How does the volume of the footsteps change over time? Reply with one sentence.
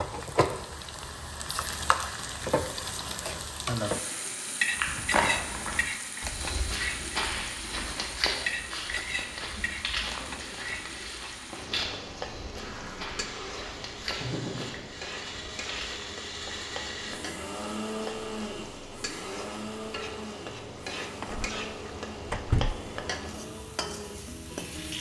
The volume of the footsteps goes down.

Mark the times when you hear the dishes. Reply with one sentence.
You can't hear the dishes here.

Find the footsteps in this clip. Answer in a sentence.
You can hear the footsteps from 4.8 to 16.1 s.